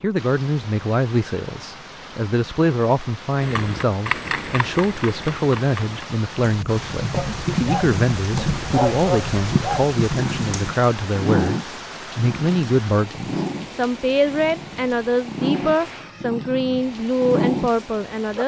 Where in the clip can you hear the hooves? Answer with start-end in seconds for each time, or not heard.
3.4-10.8.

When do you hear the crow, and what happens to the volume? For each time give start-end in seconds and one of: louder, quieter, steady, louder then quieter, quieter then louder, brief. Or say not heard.
not heard.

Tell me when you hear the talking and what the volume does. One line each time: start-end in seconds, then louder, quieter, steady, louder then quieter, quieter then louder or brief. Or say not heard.
0.0-18.4 steady.